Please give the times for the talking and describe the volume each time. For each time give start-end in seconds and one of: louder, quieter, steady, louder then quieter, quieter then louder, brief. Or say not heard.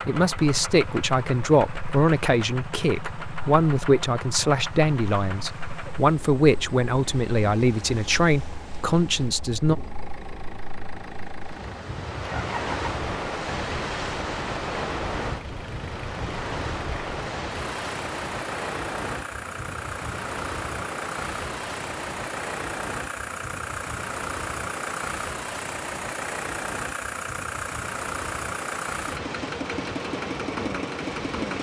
0.1-9.8 steady.